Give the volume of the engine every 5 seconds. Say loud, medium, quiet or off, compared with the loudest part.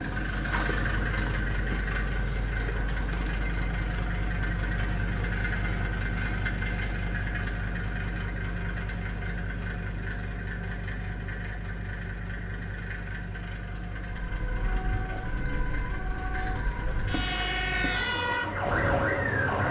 loud, loud, medium, loud.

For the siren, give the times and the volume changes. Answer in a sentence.
You can hear the siren from 14.1 to 19.6 s, getting louder.